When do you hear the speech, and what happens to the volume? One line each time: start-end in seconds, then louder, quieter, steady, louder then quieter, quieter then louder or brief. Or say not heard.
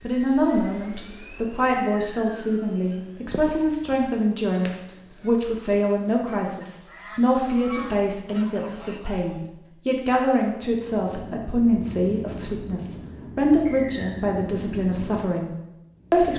0.0-16.3 steady.